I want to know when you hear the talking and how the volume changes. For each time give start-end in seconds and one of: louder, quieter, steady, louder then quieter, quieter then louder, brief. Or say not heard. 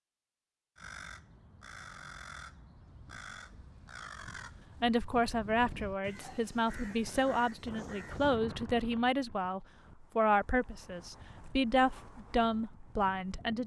4.8-13.6 steady.